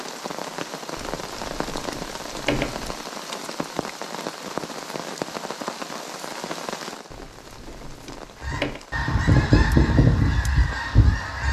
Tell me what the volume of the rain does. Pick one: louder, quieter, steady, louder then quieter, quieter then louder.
quieter.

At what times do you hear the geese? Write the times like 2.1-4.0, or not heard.
8.4-11.4.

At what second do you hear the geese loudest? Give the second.
10 s.